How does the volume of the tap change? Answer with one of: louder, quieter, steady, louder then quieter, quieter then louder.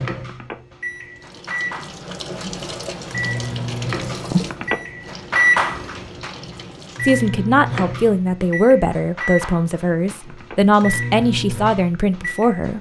louder then quieter.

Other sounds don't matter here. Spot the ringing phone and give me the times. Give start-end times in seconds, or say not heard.
0.1-0.6, 4.3-4.8, 10.1-10.6.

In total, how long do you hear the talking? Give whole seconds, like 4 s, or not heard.
6 s.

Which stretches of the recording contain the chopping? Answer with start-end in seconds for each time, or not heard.
not heard.